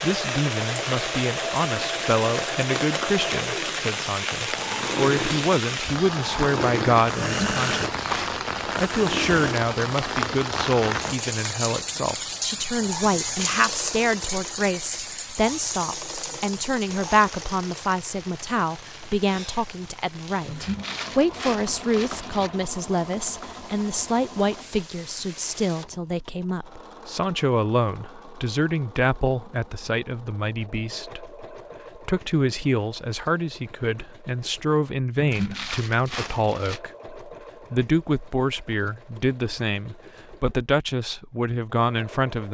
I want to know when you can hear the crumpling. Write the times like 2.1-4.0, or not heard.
7.3-8.4, 20.4-22.5, 35.2-36.8.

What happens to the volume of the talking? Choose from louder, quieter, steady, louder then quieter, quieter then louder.
steady.